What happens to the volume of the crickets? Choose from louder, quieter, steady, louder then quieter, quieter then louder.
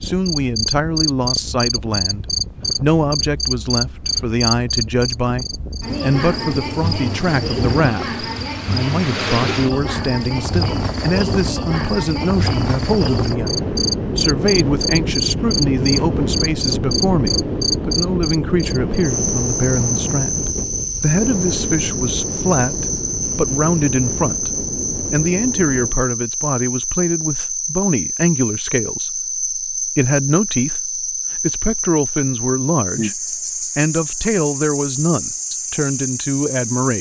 steady.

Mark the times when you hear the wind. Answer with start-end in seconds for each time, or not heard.
0.0-25.9.